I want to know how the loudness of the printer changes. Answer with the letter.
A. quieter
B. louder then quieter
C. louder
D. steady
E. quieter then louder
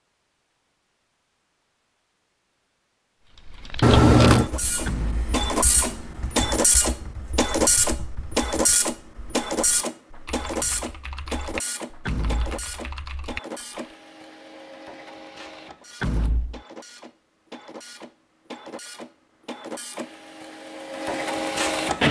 E.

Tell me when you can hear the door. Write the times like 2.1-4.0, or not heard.
4.8-5.3, 12.1-12.6, 16.0-16.6.